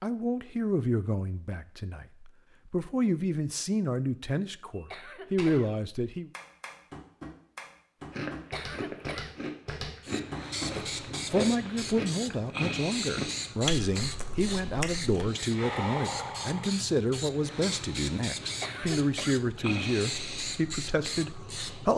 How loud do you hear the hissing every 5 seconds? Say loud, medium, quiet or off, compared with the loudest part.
off, off, loud, loud, loud.